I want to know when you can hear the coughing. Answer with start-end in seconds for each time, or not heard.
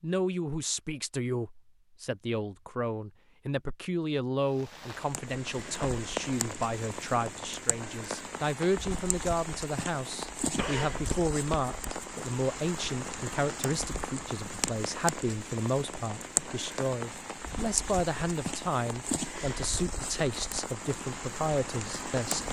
10.6-11.9.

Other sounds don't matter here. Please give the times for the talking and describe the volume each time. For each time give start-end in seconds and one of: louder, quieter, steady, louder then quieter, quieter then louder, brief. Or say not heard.
0.0-22.4 steady.